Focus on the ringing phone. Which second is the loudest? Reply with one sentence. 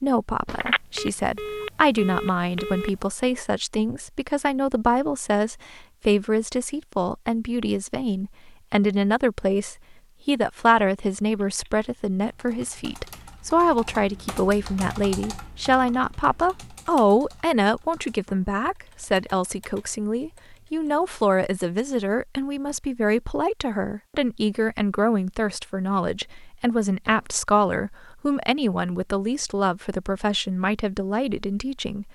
The volume of the ringing phone peaks at 1 second.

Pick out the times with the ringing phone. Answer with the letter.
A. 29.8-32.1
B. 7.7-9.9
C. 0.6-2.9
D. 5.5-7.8
C.